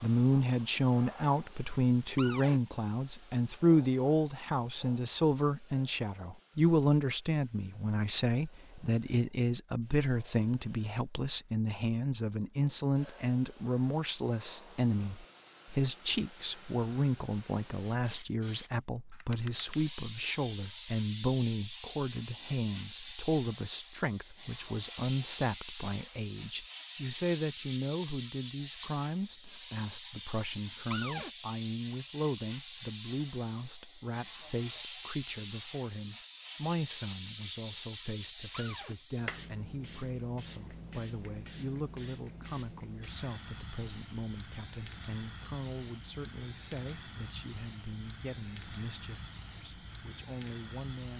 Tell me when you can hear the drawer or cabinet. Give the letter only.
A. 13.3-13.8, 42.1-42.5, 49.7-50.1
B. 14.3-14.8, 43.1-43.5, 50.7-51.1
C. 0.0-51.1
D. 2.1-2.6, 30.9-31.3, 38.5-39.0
D.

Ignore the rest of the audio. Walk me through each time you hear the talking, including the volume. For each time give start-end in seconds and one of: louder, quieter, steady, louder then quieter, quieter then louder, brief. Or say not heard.
0.0-51.1 quieter.